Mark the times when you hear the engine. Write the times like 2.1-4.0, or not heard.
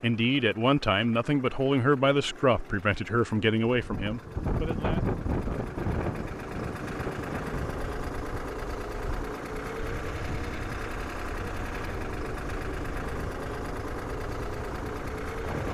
0.0-15.6.